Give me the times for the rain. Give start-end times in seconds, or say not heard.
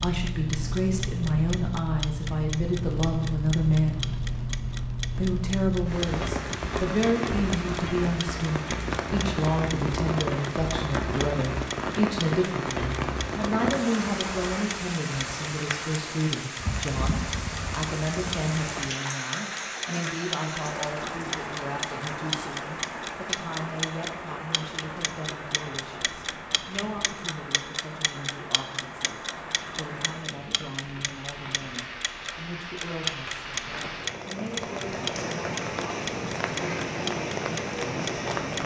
0.0-38.6.